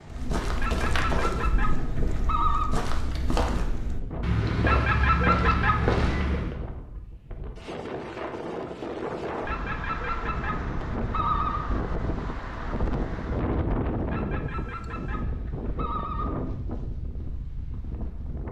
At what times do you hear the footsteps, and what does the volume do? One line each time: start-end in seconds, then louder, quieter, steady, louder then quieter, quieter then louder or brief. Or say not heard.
0.1-6.5 quieter then louder.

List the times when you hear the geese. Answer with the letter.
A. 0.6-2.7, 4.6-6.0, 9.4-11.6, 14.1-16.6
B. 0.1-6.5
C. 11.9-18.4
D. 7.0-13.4
A.